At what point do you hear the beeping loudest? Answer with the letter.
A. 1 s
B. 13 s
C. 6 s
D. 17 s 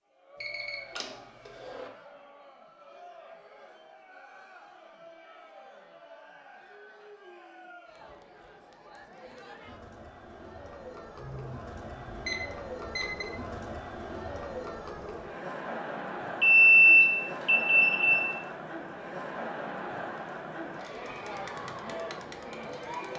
D.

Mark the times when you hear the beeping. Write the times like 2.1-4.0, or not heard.
0.4-1.9, 11.2-13.2, 16.4-18.4.